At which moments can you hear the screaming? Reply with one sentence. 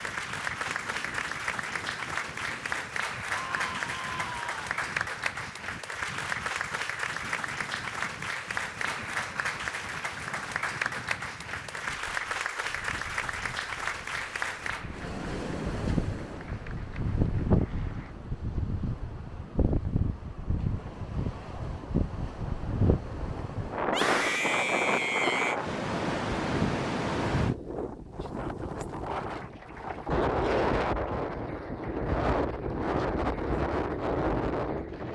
You can hear the screaming from 3.3 to 4.7 s and from 23.9 to 25.6 s.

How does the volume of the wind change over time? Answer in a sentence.
The loudness of the wind goes up.